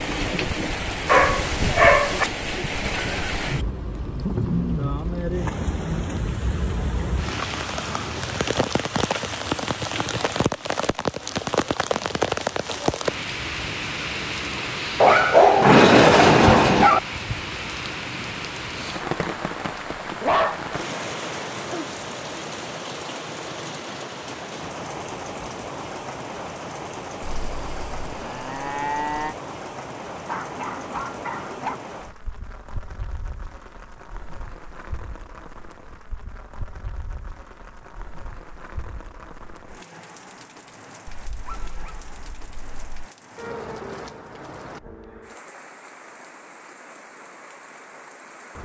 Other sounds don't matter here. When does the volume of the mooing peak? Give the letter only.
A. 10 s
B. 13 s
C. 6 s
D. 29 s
D.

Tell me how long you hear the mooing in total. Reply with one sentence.
The mooing can be heard for 2 seconds in total.